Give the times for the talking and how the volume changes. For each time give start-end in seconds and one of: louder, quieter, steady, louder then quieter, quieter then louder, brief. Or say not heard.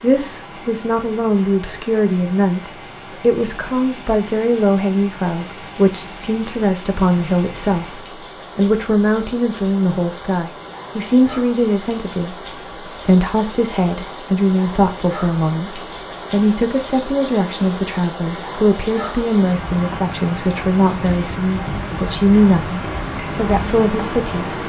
0.0-24.6 steady.